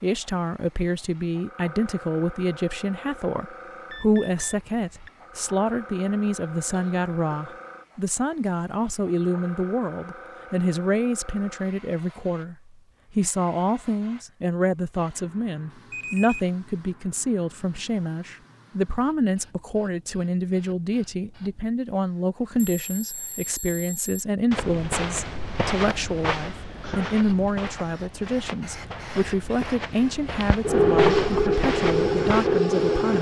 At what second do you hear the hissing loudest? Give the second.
31 s.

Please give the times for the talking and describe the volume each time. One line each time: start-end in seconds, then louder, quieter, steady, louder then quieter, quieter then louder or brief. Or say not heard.
0.0-33.1 steady.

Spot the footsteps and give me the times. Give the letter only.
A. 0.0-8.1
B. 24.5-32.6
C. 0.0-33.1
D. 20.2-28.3
B.